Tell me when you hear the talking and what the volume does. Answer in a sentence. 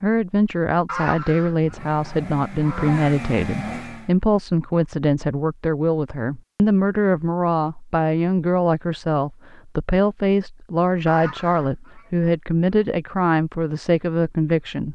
The talking can be heard from 0.0 to 14.9 s, at a steady volume.